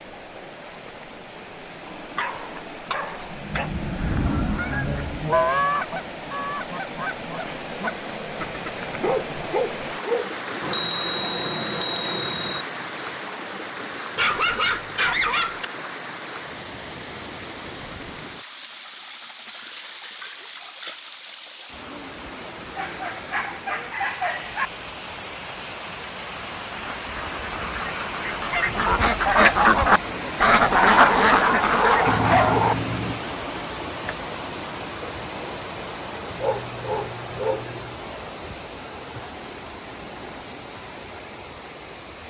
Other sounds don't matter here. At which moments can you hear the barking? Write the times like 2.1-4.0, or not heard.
1.9-3.7, 8.9-10.6, 14.2-15.7, 22.8-24.7, 30.7-32.8, 36.4-38.0.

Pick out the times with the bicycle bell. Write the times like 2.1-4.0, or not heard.
10.6-12.7, 32.0-33.2.